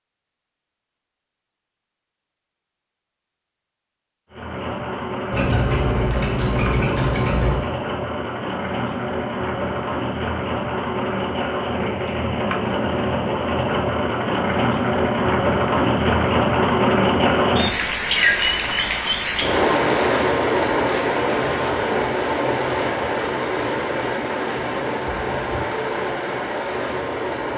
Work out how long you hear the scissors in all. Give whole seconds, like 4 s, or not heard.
2 s.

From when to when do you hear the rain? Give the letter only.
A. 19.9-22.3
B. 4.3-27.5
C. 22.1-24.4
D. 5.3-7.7
B.